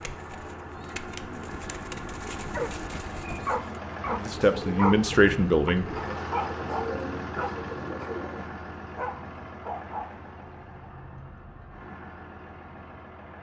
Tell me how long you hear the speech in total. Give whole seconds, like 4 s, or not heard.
2 s.